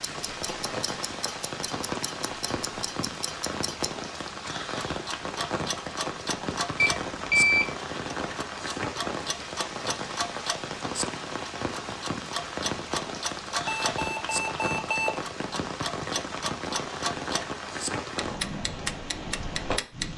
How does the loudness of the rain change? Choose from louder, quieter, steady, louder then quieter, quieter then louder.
steady.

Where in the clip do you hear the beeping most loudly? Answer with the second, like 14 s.
7 s.